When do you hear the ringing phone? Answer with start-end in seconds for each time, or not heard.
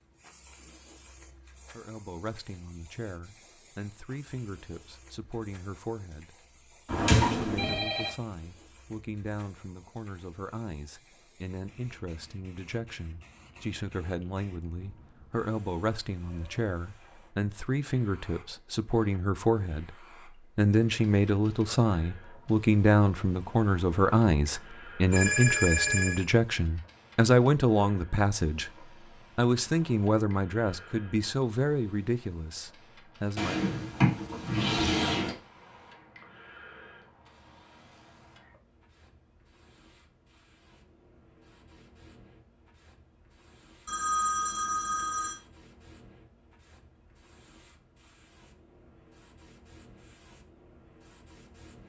7.2-8.1, 25.1-26.2, 43.9-45.4.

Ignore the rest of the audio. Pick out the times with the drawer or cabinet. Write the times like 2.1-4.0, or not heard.
6.8-7.8, 33.4-35.4.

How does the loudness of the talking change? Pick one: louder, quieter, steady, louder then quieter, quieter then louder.
louder.